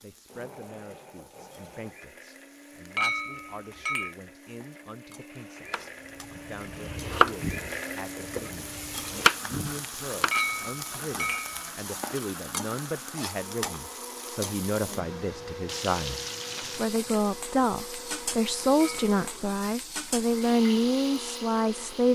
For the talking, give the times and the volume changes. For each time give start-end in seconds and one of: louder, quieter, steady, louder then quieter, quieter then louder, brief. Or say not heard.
0.0-22.1 louder.